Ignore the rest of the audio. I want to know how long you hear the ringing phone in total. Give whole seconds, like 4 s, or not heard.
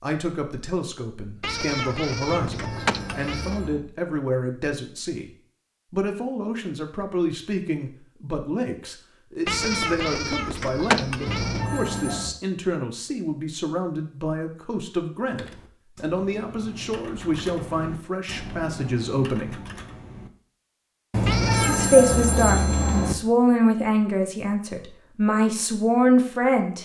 5 s.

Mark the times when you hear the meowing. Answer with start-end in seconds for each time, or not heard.
1.4-3.6, 9.4-11.7, 21.2-21.9.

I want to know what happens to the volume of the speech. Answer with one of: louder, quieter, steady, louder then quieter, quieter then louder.
louder.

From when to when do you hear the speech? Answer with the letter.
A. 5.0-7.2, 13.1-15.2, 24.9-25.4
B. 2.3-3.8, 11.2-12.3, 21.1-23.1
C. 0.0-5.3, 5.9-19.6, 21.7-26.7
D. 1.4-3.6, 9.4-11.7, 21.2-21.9
C.